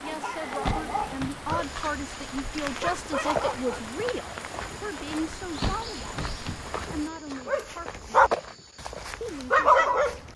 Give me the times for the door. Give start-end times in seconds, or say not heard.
0.6-2.0, 5.6-6.8.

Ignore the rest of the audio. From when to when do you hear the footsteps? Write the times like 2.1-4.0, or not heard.
1.6-9.2.